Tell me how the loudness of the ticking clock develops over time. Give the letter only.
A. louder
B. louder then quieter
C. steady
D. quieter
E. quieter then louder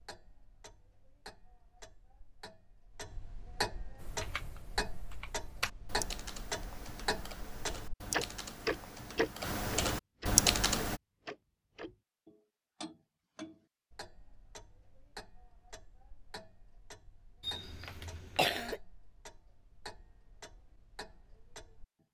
B.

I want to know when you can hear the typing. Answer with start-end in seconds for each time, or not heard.
4.0-11.0.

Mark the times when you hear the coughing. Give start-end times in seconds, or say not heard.
17.4-18.8.